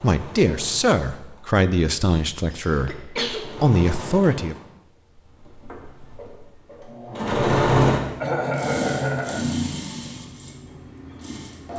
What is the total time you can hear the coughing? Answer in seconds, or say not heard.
2 s.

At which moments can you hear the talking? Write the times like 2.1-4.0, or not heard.
0.0-4.5.